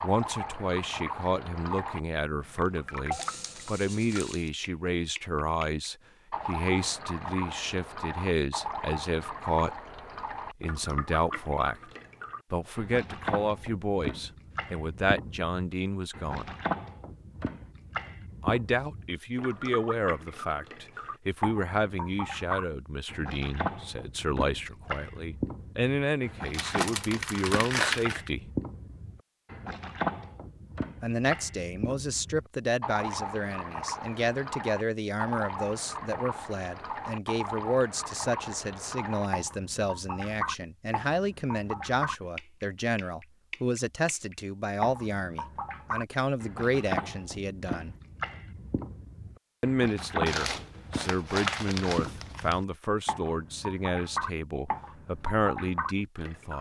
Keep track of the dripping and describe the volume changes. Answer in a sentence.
The loudness of the dripping stays about the same.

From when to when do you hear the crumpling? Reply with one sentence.
The crumpling can be heard from 3.1 to 4.5 s, from 26.5 to 28.3 s and from 50.2 to 52.5 s.